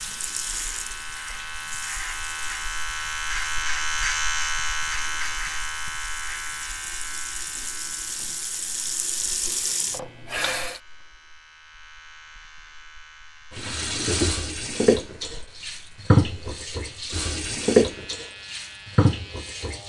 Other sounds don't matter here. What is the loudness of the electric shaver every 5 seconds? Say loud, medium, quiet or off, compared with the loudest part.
loud, medium, quiet, quiet.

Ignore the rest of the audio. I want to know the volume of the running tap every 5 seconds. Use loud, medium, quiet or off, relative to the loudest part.
quiet, medium, loud, loud.